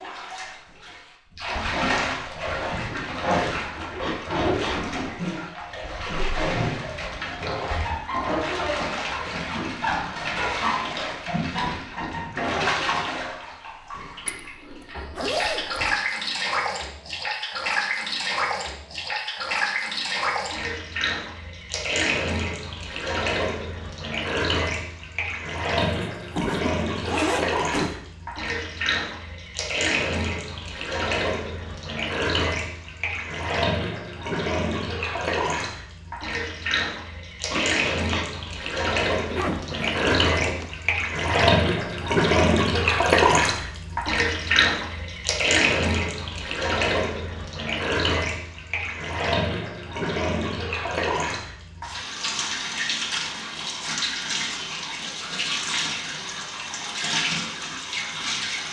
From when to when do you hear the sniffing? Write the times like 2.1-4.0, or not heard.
4.0-4.8, 37.5-38.2.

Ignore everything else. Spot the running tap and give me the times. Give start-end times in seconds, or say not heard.
0.0-58.6.